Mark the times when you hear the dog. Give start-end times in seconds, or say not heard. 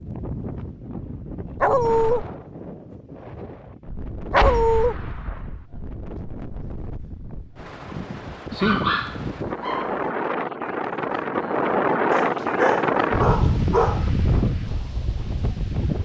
1.6-2.2, 4.3-5.0, 8.6-10.0, 12.1-14.1.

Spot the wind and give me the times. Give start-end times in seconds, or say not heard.
0.0-15.9.